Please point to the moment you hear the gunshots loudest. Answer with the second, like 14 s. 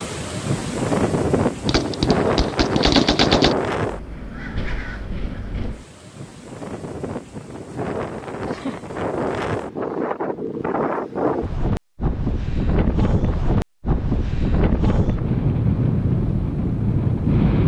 3 s.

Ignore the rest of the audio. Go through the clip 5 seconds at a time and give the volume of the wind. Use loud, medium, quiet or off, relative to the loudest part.
loud, medium, loud, loud.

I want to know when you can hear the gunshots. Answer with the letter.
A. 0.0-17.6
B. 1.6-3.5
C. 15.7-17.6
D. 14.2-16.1
B.